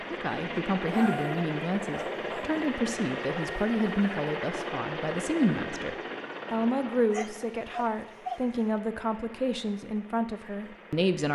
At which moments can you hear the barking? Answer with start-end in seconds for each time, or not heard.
0.9-2.6, 7.1-8.4.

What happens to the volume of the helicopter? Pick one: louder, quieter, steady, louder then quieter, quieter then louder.
quieter.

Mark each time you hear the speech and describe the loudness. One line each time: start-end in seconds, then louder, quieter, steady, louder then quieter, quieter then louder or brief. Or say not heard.
0.1-11.3 steady.